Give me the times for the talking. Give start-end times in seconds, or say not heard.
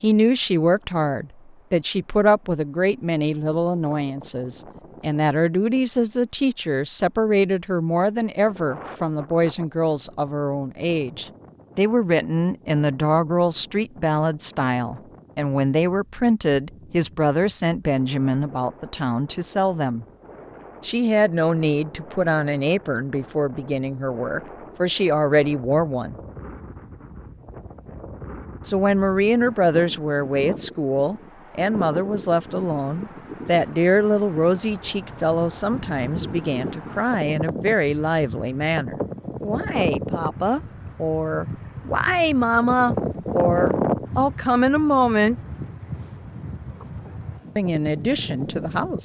0.0-20.1, 20.8-26.2, 28.6-45.4, 47.5-48.9.